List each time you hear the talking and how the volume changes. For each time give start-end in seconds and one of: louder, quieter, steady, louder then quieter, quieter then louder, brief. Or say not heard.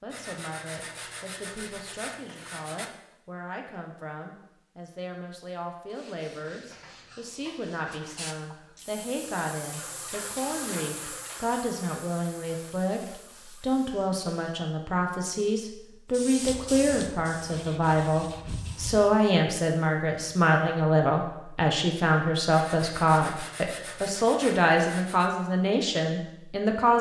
0.0-26.9 louder.